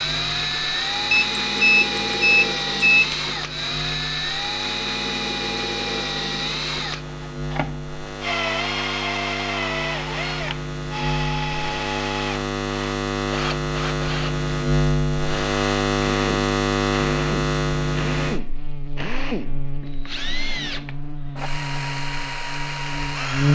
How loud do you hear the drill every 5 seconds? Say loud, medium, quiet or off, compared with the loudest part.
loud, loud, medium, medium, medium.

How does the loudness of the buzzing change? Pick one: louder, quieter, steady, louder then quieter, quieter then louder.
louder then quieter.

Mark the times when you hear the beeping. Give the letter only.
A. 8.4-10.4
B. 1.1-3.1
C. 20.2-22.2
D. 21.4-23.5
B.